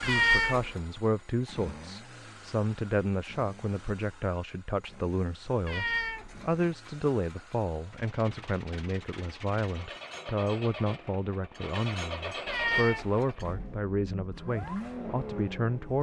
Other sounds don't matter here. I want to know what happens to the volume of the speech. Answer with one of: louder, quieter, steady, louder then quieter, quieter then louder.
steady.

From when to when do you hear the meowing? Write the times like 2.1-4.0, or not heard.
0.0-0.8, 5.7-7.5, 12.4-13.3.